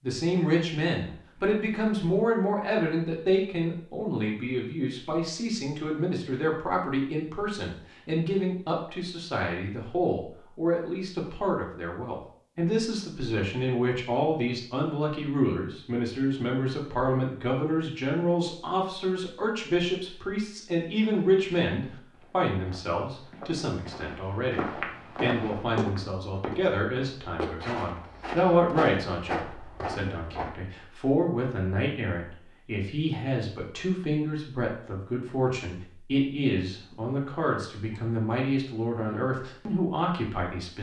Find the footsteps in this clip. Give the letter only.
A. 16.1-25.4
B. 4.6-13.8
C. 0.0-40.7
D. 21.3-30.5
D.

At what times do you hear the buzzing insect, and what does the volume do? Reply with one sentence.
The buzzing insect can't be heard in this clip.